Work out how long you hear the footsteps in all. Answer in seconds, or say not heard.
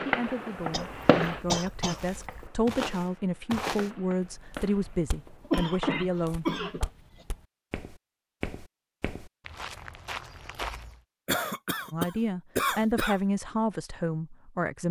9 s.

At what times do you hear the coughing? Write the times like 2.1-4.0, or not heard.
0.7-2.5, 5.5-6.9, 11.2-13.2.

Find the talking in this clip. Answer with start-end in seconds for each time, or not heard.
0.0-6.5, 11.9-14.8.